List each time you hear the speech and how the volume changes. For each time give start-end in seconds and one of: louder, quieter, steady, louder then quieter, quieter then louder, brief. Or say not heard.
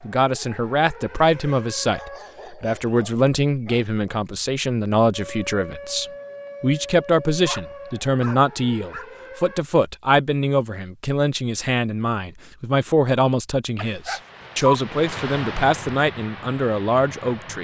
0.0-17.6 steady.